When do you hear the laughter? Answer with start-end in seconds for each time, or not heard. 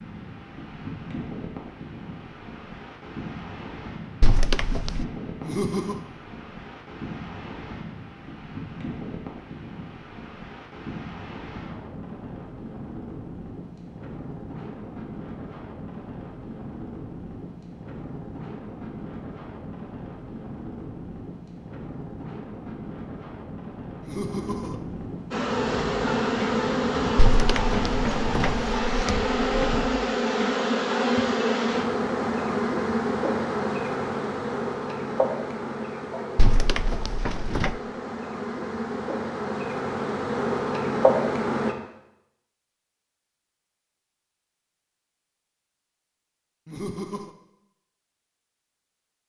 5.4-6.0, 24.0-24.8, 46.6-47.4.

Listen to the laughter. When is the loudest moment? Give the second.
6 s.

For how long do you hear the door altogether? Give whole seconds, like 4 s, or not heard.
5 s.